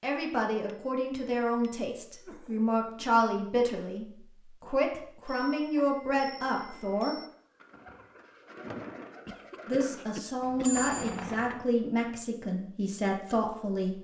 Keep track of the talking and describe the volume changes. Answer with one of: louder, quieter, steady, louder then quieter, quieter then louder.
steady.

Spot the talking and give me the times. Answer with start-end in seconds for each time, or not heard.
0.0-7.2, 9.7-13.9.